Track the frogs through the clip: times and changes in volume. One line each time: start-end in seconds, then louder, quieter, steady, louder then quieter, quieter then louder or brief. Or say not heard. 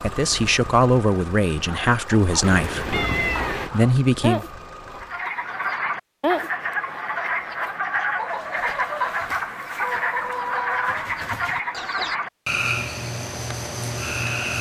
5.0-14.5 steady.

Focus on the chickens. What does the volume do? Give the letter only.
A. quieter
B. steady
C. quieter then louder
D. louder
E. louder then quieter
E.